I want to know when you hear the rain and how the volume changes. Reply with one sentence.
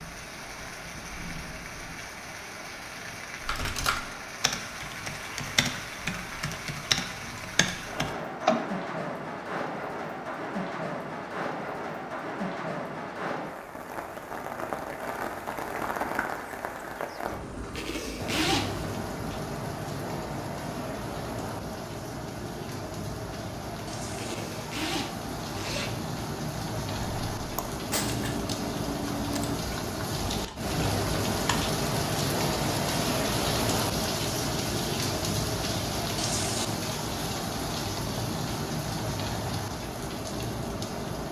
You can hear the rain from 0.0 to 41.2 s, getting louder.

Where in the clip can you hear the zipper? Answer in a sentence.
You can hear the zipper from 17.8 to 18.9 s and from 24.1 to 25.9 s.